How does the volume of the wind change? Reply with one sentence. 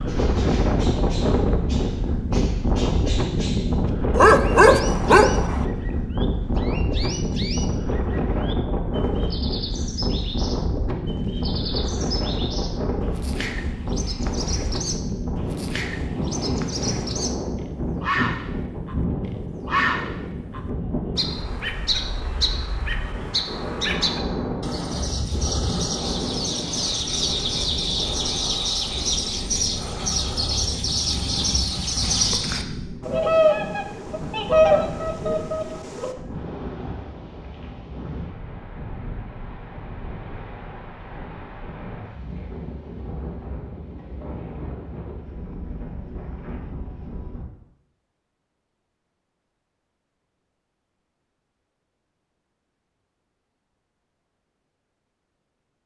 The loudness of the wind goes down.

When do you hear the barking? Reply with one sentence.
The barking can be heard from 4.1 to 5.7 s.